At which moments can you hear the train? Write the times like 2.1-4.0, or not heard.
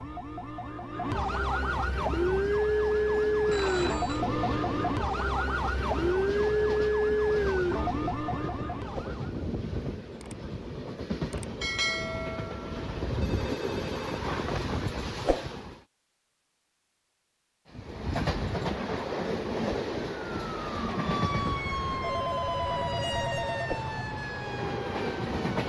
1.9-15.8, 17.7-25.6.